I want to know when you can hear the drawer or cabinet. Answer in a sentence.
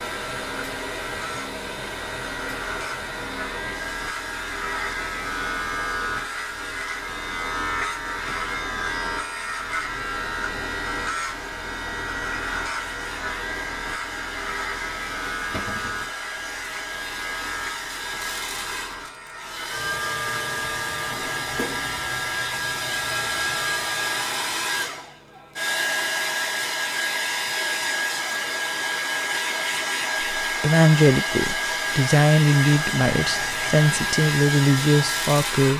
You can hear the drawer or cabinet from 15.5 to 16.0 s and from 21.1 to 21.9 s.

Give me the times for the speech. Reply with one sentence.
The speech can be heard from 30.4 to 35.7 s.